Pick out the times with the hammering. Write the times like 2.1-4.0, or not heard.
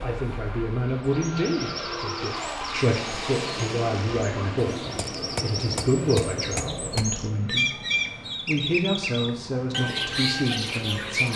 4.6-7.2.